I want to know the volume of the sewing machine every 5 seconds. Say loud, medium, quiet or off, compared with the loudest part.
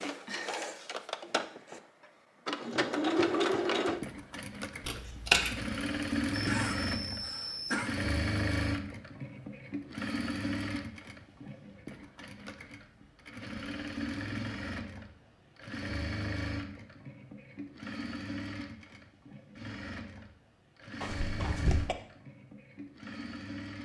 loud, loud, medium, medium, medium.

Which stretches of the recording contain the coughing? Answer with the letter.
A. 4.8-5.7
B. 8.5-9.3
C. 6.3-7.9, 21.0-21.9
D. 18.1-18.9
C.